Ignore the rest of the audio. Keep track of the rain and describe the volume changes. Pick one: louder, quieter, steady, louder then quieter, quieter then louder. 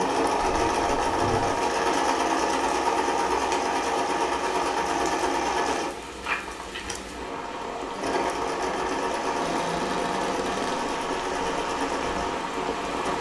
louder.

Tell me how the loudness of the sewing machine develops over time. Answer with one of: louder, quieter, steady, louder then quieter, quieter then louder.
quieter.